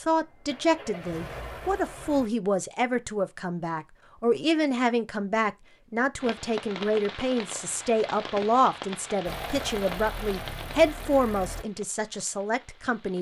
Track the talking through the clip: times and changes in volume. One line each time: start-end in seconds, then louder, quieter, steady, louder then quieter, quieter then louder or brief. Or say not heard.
0.0-13.1 steady.